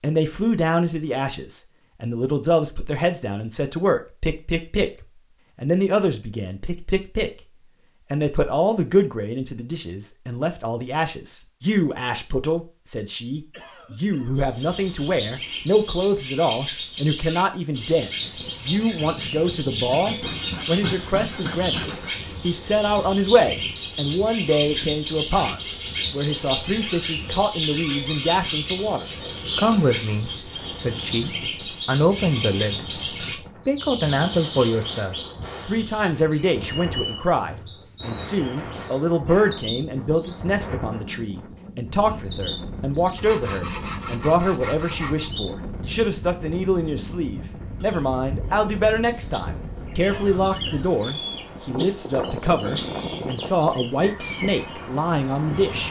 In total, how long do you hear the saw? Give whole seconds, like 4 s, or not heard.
4 s.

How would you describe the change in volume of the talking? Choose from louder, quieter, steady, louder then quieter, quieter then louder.
steady.